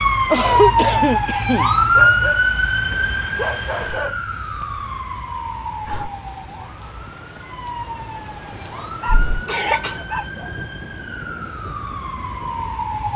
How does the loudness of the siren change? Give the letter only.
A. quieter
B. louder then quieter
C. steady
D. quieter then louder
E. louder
A.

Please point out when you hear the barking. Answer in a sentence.
The barking can be heard from 1.9 to 4.2 s and from 8.8 to 10.6 s.